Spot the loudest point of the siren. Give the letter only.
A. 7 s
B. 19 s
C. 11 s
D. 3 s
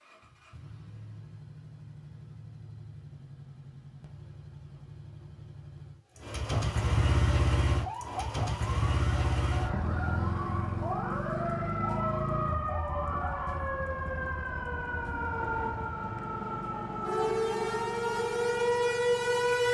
B.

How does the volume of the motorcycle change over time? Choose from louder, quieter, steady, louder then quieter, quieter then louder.
louder then quieter.